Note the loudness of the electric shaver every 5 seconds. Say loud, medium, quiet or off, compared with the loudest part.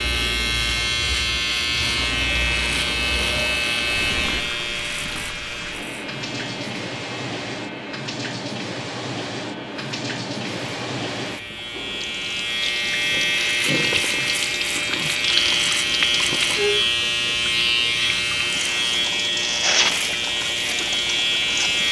loud, quiet, loud, loud, loud.